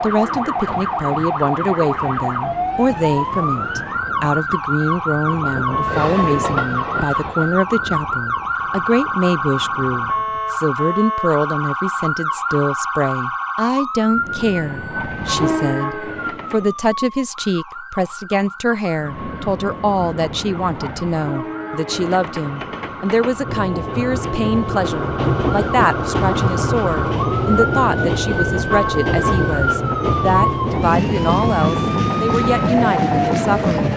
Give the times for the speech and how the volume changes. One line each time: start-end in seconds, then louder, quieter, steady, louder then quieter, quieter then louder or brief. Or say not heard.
0.0-33.9 steady.